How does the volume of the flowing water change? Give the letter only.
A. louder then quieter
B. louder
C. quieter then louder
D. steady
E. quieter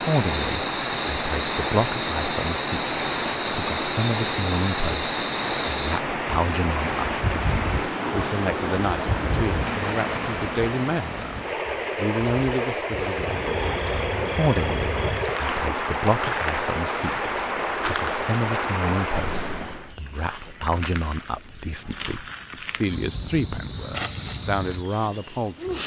D.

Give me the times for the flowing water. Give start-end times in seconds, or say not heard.
0.0-19.9.